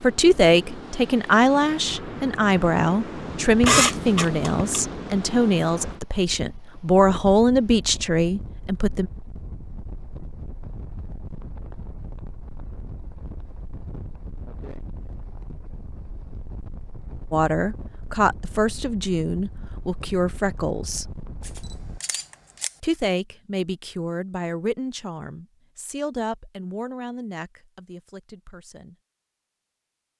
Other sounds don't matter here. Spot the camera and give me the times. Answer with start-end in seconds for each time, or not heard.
3.6-4.8, 21.4-22.7.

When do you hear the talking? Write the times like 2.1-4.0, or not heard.
0.0-9.1, 17.3-21.1, 22.8-28.9.